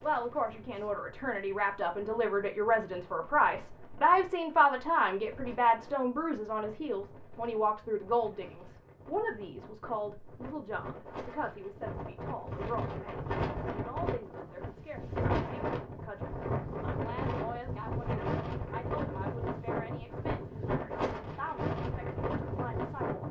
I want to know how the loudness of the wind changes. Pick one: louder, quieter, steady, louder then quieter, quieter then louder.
louder.